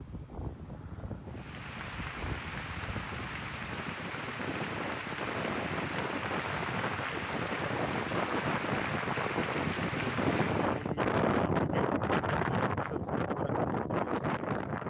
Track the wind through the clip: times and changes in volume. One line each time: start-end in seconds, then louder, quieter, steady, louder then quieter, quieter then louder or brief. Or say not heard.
0.0-14.8 louder.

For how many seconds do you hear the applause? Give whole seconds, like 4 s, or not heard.
10 s.